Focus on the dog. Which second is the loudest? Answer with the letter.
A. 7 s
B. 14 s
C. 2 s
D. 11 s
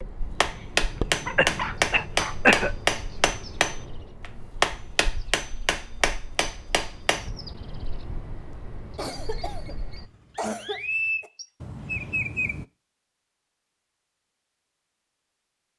C.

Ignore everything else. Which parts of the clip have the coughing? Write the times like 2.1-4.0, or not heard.
1.4-2.7, 8.9-11.3.